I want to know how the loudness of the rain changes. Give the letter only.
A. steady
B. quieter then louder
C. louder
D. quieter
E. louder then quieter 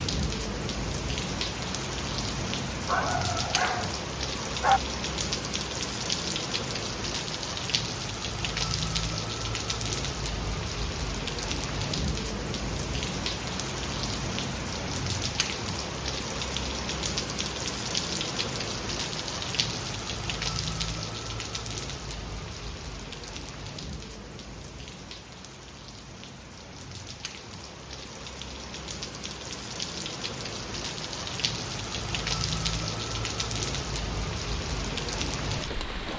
B.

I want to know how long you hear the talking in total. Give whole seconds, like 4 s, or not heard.
not heard.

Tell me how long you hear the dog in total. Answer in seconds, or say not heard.
2 s.